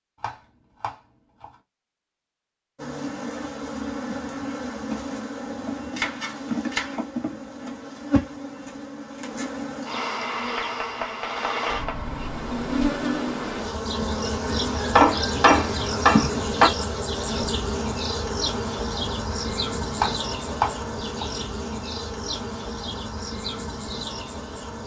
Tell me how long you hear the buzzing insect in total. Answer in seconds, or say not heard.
22 s.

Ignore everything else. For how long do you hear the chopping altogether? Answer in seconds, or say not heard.
7 s.